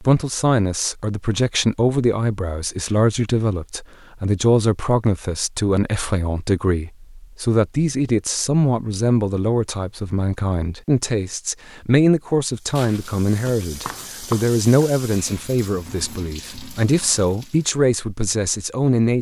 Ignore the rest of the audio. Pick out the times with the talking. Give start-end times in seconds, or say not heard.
0.0-19.1.